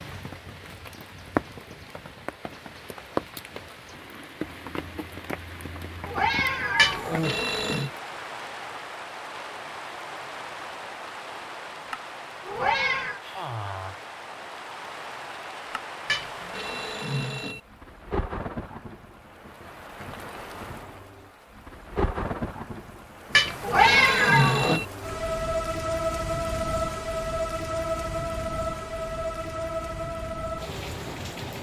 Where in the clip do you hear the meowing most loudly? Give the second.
24 s.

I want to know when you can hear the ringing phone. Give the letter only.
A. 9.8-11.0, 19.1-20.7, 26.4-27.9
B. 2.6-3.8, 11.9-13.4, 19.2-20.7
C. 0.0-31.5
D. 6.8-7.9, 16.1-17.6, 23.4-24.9
D.